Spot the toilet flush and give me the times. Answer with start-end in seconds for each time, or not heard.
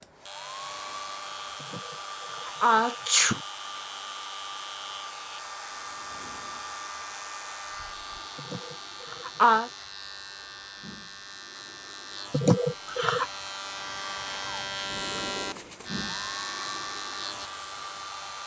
not heard.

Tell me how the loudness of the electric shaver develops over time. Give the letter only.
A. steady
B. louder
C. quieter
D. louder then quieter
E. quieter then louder
B.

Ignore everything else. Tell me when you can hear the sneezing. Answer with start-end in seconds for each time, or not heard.
1.7-3.4, 8.3-9.7, 12.3-13.3.